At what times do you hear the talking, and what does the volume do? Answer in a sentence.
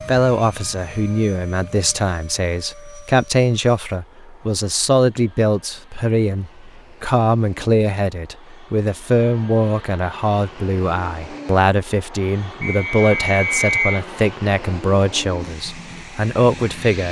The talking can be heard from 0.1 to 17.0 s, at a steady volume.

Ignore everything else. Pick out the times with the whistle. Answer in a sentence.
The whistle can be heard from 12.6 to 14.0 s.